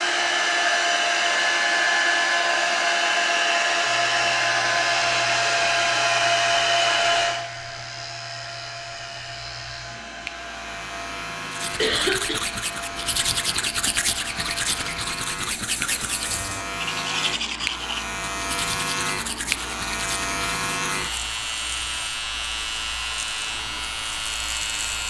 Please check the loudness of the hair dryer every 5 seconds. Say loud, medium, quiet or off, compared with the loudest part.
loud, loud, quiet, quiet, quiet.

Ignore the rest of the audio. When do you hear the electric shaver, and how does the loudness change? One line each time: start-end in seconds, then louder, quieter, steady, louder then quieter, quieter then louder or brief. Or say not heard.
3.8-25.0 louder.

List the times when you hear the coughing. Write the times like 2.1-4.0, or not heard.
11.8-12.4.